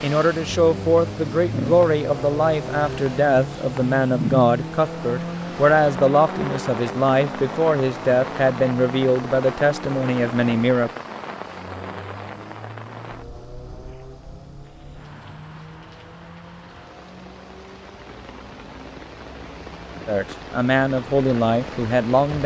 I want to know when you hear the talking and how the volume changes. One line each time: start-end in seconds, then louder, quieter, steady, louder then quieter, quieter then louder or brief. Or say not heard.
0.0-10.9 steady
20.1-22.4 brief.